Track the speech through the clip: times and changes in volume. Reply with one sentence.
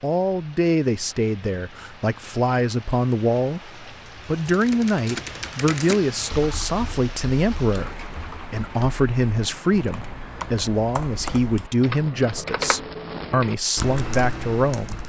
You can hear the speech from 0.0 to 15.0 s, at a steady volume.